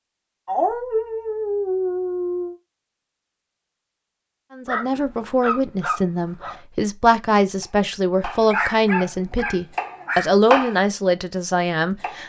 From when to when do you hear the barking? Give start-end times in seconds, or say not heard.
0.5-2.5, 4.7-6.6, 8.4-10.3.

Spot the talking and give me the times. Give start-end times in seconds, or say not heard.
4.5-12.2.